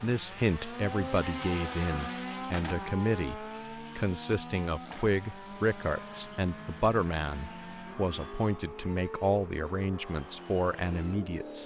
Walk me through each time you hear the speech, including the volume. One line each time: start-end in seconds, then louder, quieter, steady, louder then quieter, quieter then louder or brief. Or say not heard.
0.0-11.6 steady.